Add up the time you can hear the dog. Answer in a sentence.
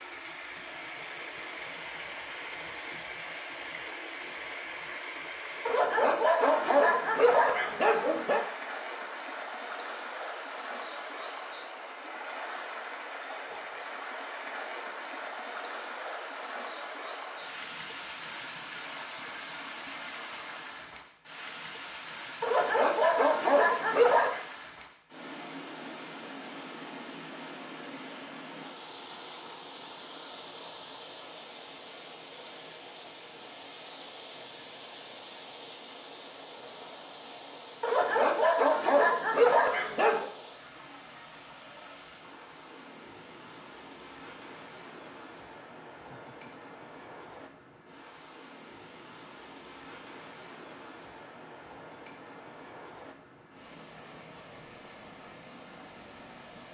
You can hear the dog for 7 seconds altogether.